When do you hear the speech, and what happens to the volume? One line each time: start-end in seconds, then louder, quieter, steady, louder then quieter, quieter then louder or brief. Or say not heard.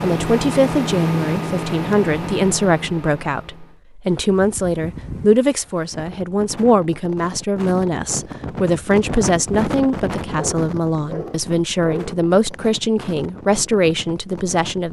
0.0-14.8 steady.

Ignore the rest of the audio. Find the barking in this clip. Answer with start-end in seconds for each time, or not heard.
10.3-12.2.